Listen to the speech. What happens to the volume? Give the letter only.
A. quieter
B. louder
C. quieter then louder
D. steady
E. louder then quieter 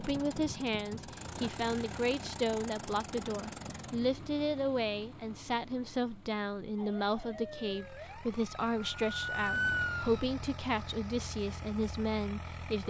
D.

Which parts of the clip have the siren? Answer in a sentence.
The siren can be heard from 6.8 to 10.2 s.